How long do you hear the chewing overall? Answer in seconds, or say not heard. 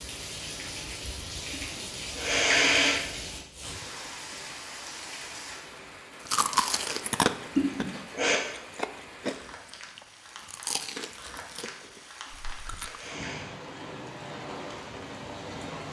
7 s.